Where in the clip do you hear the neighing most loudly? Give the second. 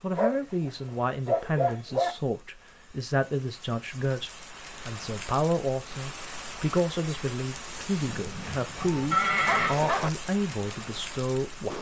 9 s.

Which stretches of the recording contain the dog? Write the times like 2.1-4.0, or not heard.
0.1-2.1, 8.8-10.1.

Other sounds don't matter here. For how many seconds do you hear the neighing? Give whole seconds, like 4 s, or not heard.
2 s.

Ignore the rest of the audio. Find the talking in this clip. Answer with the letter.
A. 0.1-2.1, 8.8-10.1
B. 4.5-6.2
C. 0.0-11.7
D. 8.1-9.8
C.